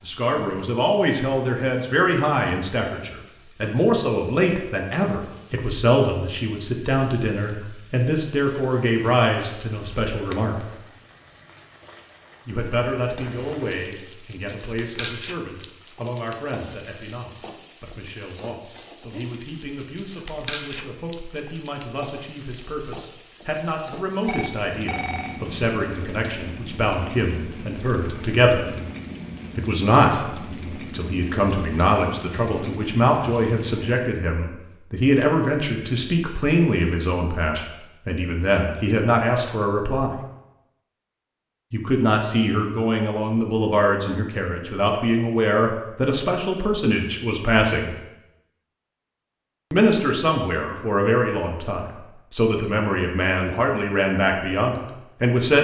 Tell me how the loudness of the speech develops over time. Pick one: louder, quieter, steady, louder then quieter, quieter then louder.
quieter then louder.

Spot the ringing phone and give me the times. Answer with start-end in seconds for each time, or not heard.
24.2-25.4.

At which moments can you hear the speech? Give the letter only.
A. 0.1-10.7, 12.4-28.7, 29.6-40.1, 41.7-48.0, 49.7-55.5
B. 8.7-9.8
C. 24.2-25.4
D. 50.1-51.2
A.